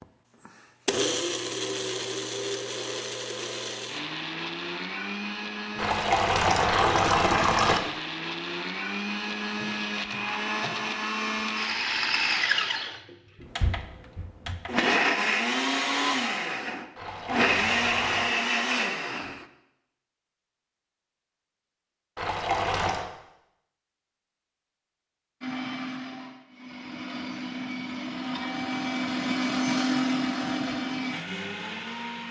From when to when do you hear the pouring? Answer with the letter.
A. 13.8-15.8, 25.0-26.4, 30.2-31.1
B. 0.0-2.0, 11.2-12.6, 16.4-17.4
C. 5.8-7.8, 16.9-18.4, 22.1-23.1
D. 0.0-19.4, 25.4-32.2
C.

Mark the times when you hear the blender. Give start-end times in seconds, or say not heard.
0.0-19.4, 25.4-32.2.